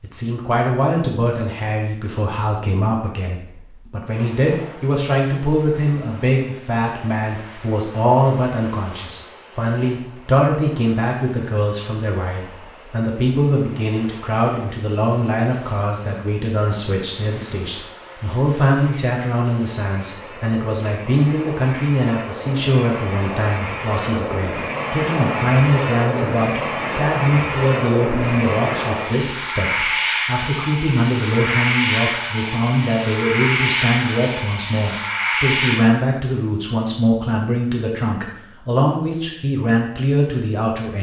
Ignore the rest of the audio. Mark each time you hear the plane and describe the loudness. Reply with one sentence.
The plane can be heard from 4.1 to 35.8 s, getting louder.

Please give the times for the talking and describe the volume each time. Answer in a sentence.
The talking can be heard from 0.0 to 40.9 s, at a steady volume.